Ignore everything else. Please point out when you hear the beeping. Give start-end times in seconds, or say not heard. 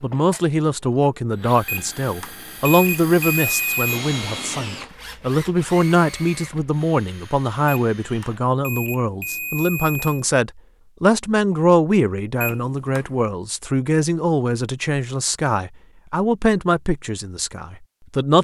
1.6-4.0, 7.7-10.2, 12.4-13.2.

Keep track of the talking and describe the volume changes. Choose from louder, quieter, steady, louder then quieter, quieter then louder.
steady.